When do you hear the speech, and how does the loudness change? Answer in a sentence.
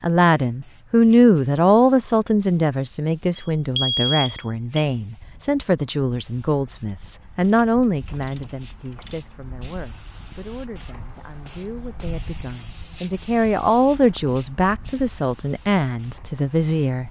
You can hear the speech from 0.0 to 17.0 s, getting quieter then louder.